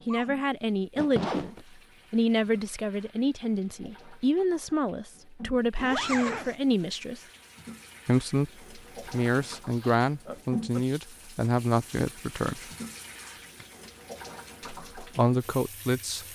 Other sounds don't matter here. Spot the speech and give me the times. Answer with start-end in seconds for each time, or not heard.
0.1-7.2, 8.1-12.7, 14.8-16.2.